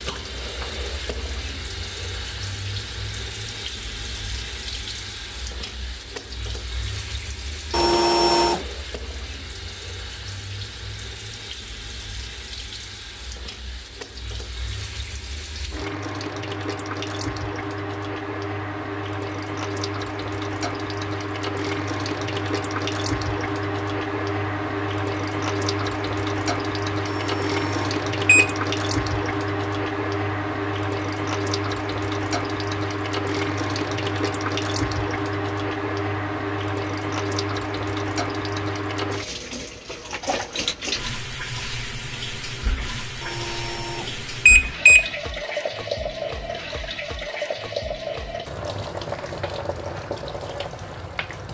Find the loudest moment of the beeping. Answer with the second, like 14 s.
45 s.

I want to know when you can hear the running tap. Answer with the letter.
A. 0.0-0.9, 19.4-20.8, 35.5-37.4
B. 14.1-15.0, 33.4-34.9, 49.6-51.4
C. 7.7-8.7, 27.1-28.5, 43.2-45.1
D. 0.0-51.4
D.